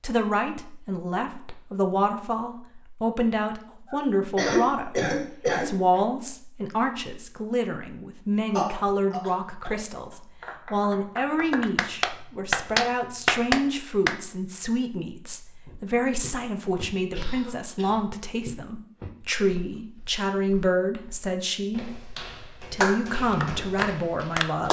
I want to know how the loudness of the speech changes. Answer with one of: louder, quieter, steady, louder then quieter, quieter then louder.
steady.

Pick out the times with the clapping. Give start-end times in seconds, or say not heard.
10.4-14.2, 22.8-24.6.